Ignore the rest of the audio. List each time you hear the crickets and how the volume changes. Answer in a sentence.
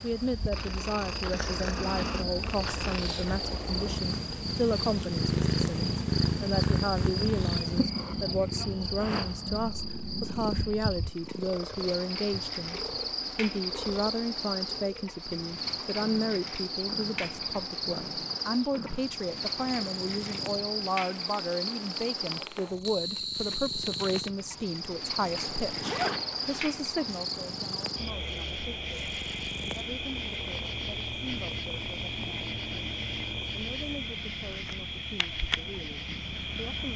You can hear the crickets from 0.0 to 36.9 s, at a steady volume.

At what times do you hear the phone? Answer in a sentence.
You can't hear the phone here.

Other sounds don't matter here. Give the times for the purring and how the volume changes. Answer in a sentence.
You can hear the purring from 0.0 to 36.9 s, getting quieter.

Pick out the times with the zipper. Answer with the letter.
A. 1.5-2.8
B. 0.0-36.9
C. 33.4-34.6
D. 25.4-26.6
D.